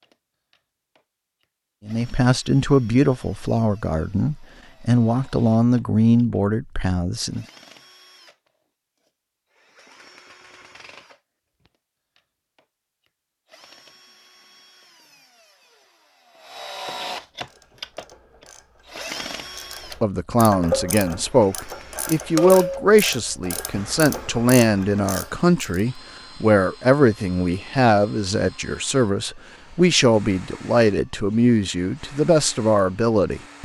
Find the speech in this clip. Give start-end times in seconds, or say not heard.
1.9-7.5, 20.0-33.6.